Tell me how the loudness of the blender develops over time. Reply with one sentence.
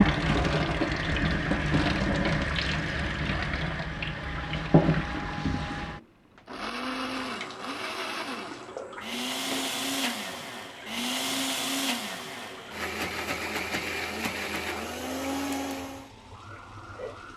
The loudness of the blender goes up.